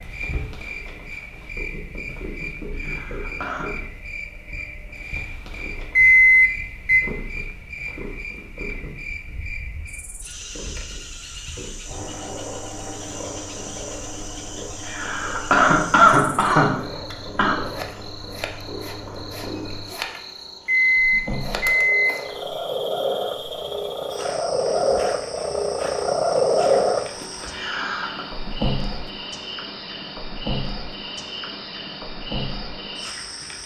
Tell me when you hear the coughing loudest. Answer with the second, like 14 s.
16 s.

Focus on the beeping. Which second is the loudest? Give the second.
6 s.